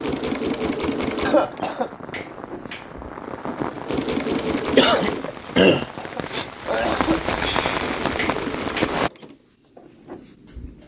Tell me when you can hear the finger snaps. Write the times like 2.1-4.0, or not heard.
2.1-3.0, 8.2-9.0.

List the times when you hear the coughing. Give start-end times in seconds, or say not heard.
1.2-1.9, 5.6-7.3.